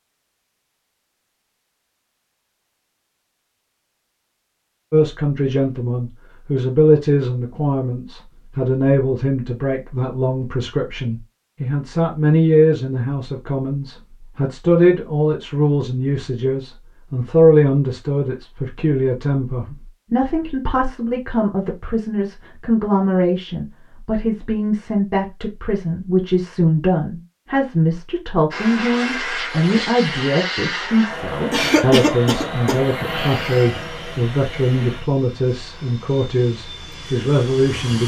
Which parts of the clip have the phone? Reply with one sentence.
You can't hear the phone here.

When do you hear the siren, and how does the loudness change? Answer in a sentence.
You can't hear the siren here.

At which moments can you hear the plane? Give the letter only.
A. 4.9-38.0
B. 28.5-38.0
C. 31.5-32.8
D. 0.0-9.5
B.